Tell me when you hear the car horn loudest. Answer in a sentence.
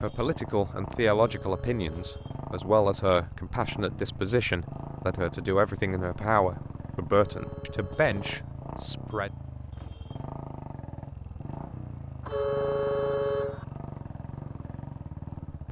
The loudest moment of the car horn is at 13 seconds.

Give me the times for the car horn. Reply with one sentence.
You can hear the car horn from 1.2 to 2.4 s, from 7.1 to 8.5 s and from 12.2 to 13.7 s.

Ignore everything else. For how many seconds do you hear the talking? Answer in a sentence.
You can hear the talking for 9 seconds altogether.